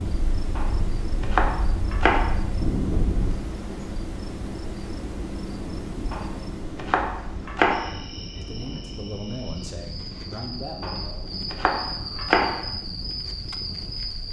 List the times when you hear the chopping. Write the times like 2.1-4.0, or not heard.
0.6-2.4, 6.1-7.9, 10.8-12.7.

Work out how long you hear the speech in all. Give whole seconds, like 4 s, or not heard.
3 s.